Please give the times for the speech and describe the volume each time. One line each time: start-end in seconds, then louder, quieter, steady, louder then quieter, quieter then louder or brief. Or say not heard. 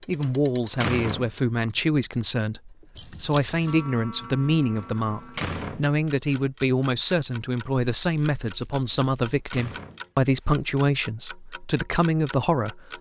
0.1-12.9 steady.